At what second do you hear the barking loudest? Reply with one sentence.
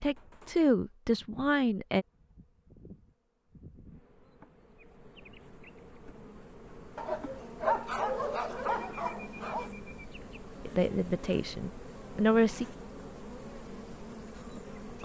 The volume of the barking peaks at 8 seconds.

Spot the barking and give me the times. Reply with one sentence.
You can hear the barking from 7.0 to 9.7 s.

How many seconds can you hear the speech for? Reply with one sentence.
The speech can be heard for 4 seconds in total.